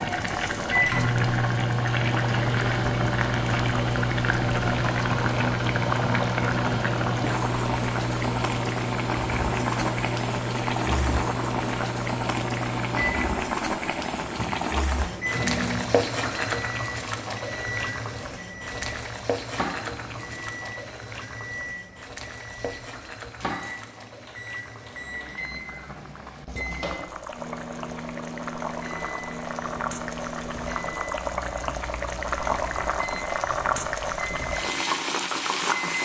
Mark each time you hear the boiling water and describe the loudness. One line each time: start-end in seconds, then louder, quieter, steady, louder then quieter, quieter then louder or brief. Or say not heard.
0.0-36.0 quieter then louder.